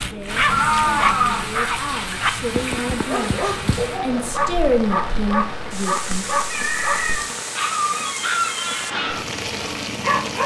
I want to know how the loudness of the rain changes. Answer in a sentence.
The volume of the rain stays about the same.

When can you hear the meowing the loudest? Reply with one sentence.
The volume of the meowing peaks at 1 second.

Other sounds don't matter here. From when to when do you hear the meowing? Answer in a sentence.
The meowing can be heard from 0.5 to 1.5 s and from 6.3 to 7.2 s.